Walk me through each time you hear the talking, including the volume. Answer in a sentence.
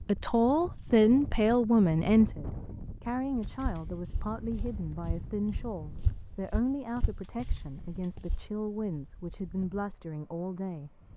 The talking can be heard from 0.0 to 11.0 s, getting quieter.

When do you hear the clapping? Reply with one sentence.
The clapping can't be heard in this clip.